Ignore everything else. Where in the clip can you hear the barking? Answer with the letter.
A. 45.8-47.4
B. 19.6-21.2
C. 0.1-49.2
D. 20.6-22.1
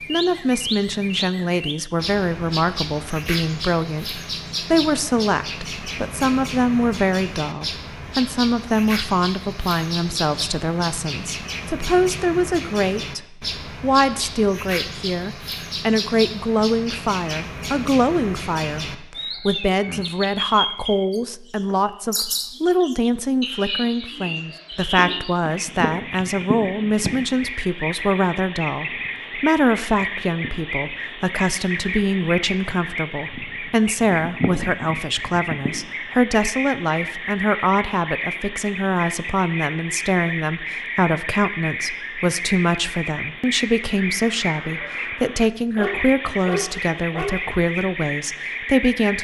A.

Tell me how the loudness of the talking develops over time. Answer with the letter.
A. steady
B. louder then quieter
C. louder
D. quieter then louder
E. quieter
A.